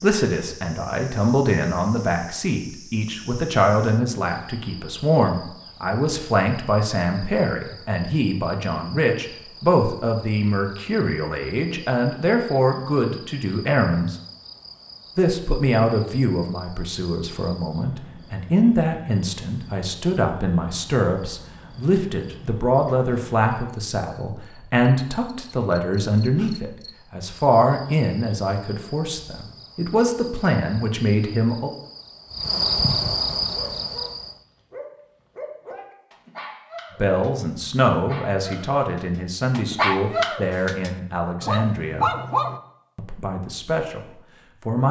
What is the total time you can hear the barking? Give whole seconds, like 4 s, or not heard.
9 s.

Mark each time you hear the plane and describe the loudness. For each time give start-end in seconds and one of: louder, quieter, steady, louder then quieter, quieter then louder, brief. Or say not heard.
not heard.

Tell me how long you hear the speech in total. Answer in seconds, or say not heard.
38 s.